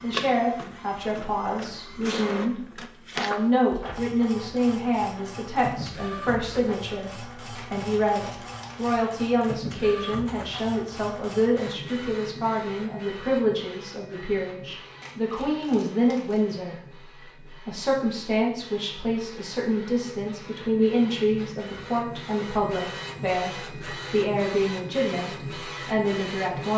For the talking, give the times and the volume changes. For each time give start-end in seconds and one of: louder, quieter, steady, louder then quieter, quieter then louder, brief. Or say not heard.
0.0-26.7 steady.